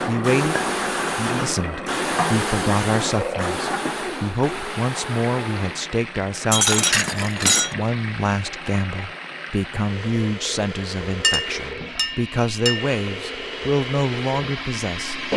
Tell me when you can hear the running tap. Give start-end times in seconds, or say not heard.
0.0-15.3.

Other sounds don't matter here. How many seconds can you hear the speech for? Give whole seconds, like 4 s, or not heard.
15 s.